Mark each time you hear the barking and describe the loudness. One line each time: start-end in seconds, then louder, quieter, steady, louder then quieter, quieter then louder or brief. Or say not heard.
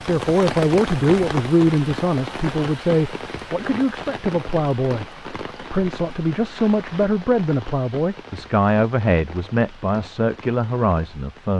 not heard.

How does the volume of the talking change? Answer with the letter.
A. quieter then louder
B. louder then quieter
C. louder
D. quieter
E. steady
E.